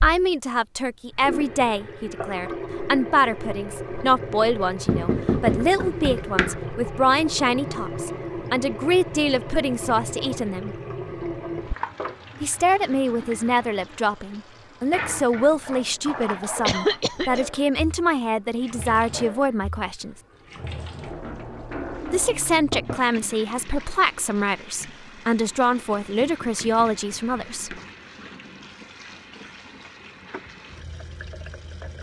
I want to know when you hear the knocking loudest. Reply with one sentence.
The volume of the knocking peaks at 5 seconds.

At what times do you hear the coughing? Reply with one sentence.
You can hear the coughing from 16.6 to 17.4 s.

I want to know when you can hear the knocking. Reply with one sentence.
The knocking can be heard from 4.8 to 6.6 s and from 26.1 to 27.9 s.